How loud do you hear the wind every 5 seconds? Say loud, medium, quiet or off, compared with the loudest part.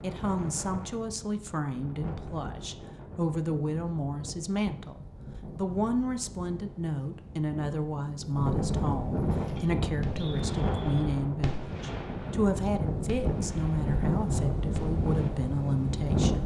quiet, medium, loud, loud.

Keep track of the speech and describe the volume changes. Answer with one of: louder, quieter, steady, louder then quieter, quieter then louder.
steady.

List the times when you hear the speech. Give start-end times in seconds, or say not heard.
0.0-16.4.